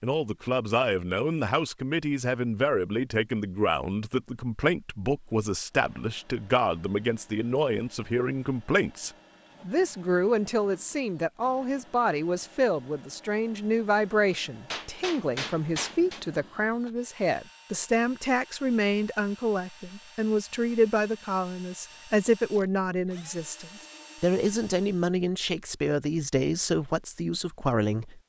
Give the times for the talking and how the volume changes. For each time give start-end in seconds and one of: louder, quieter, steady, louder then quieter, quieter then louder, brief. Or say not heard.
0.0-28.2 steady.